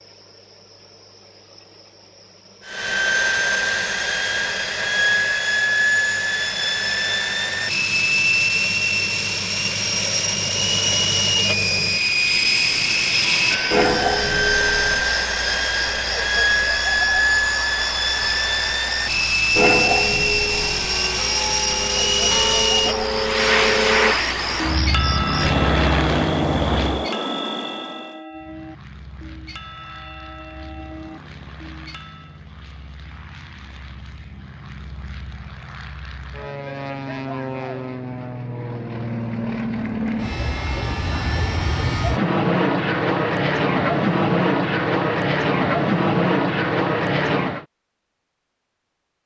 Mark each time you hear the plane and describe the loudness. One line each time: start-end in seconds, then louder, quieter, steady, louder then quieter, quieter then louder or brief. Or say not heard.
2.6-27.1 steady
28.3-47.6 louder.